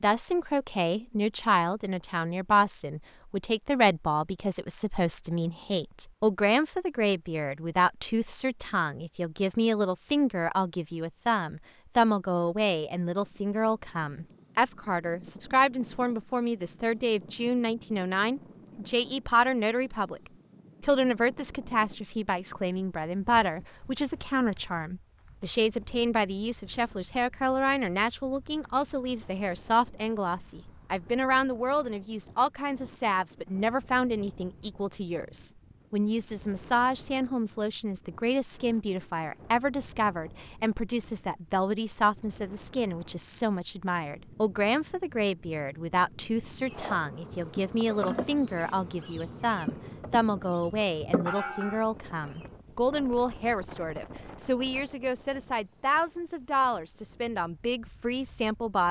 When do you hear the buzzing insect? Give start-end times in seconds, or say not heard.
46.6-52.5.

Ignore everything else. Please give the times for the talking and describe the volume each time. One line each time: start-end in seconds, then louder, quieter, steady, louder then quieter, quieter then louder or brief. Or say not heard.
0.0-20.2 steady
20.8-58.8 steady.